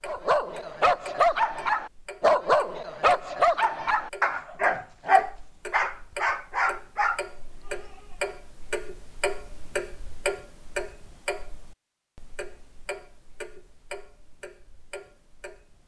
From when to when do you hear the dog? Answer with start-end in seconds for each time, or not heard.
0.1-8.3.